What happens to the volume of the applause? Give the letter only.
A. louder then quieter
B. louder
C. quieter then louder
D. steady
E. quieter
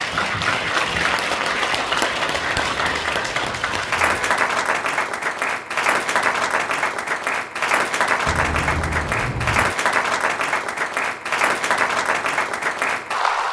D.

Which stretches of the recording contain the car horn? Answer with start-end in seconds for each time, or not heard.
2.3-4.3, 8.2-9.8.